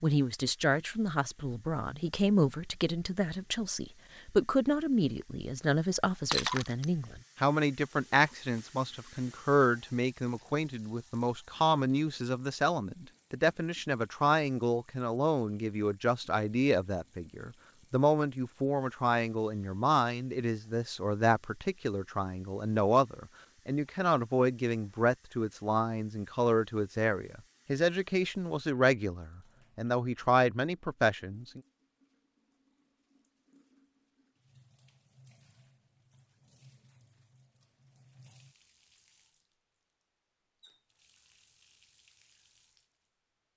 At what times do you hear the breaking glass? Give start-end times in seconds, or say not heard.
6.3-6.8.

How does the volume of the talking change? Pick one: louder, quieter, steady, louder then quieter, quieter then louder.
steady.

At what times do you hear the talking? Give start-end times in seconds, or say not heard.
0.0-31.6.